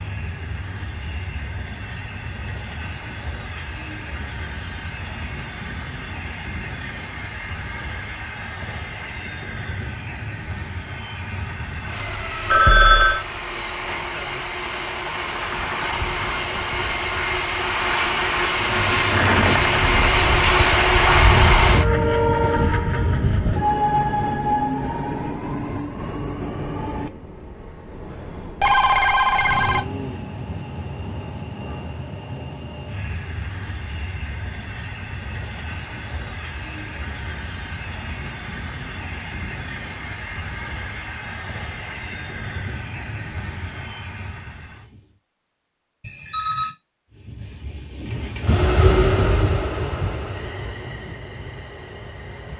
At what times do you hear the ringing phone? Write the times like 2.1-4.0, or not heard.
12.5-13.2, 28.6-29.9, 46.0-46.8.